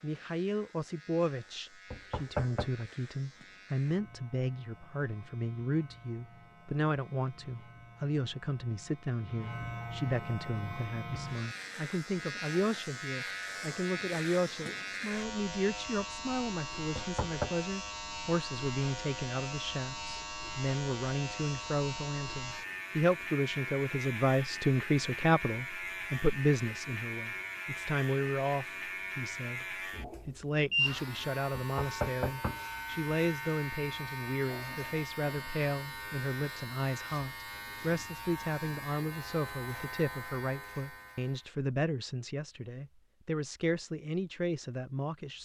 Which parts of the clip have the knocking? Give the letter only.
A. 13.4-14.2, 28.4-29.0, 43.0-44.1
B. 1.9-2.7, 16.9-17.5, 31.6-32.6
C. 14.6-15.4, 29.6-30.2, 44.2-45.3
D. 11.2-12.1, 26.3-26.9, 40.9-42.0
B.